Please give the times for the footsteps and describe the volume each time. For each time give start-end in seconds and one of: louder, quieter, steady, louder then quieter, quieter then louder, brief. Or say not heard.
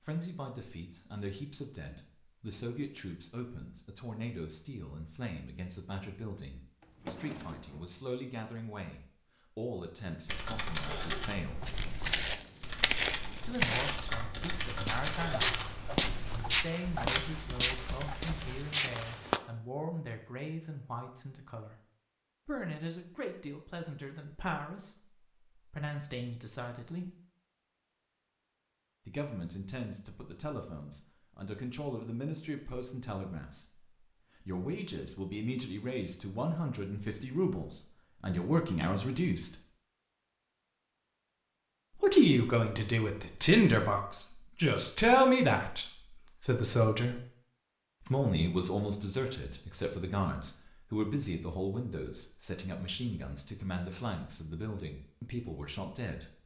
11.7-19.4 steady.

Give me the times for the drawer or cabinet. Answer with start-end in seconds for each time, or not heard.
6.8-7.9.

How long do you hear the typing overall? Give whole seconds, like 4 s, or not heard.
8 s.